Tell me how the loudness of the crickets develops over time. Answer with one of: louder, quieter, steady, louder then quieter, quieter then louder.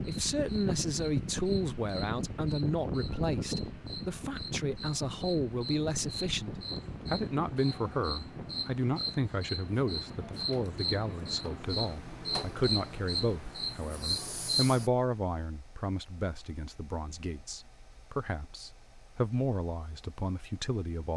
louder.